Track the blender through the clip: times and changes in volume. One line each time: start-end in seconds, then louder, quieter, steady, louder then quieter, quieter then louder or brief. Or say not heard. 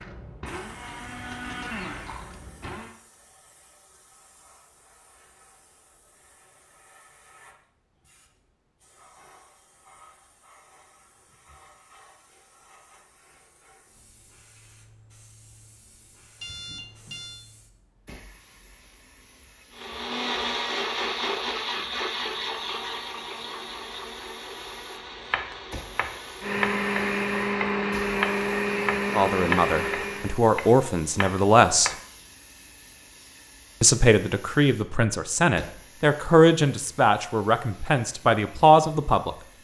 0.0-2.9 brief
19.7-30.4 quieter then louder.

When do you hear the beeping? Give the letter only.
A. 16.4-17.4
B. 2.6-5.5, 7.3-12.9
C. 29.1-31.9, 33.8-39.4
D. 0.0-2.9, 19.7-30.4
A.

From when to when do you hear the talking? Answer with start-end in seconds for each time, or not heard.
29.1-31.9, 33.8-39.4.